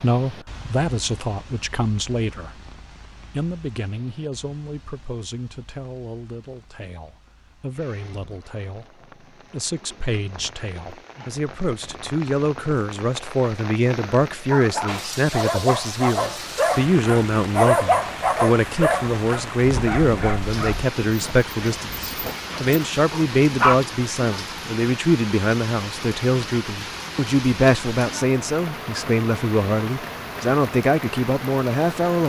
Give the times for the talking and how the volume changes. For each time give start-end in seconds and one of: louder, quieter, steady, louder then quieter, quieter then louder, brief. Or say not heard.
0.0-2.6 brief
3.3-32.2 louder.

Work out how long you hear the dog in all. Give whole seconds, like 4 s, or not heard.
9 s.